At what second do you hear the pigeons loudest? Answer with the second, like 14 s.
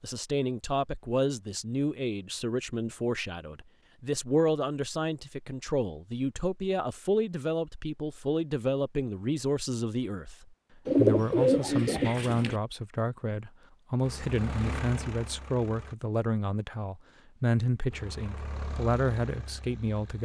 11 s.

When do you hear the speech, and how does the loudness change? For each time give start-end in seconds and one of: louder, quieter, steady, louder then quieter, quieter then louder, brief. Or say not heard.
0.0-20.2 steady.